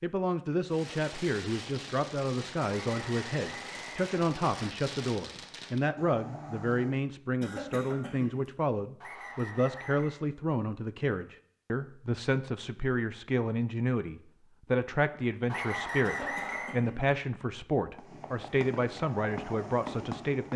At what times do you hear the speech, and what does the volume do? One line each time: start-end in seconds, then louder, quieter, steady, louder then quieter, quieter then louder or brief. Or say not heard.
0.0-20.5 steady.